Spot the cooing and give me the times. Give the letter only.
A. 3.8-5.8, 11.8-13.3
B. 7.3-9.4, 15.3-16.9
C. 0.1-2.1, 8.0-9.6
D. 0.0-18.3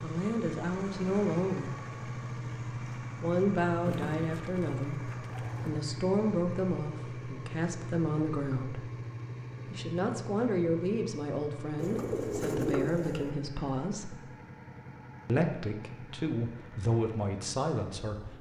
A.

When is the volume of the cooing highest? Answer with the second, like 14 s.
13 s.